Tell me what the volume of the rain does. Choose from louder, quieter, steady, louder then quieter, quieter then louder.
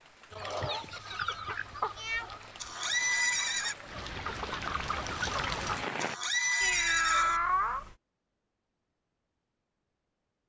louder.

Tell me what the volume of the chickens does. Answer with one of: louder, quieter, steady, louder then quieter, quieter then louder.
quieter then louder.